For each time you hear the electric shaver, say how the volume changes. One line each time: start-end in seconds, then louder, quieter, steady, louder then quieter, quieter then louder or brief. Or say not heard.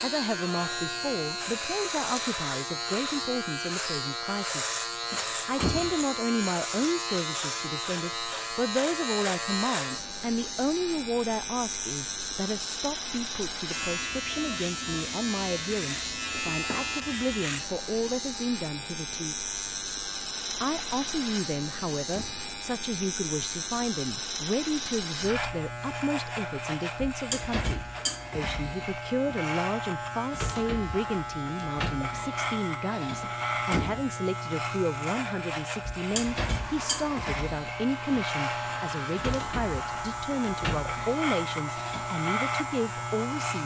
0.0-43.6 steady.